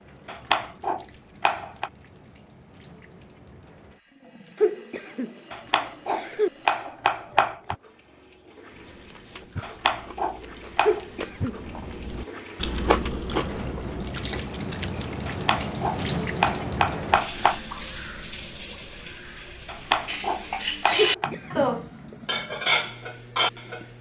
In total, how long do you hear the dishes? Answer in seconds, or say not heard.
4 s.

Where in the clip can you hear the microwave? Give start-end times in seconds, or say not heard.
not heard.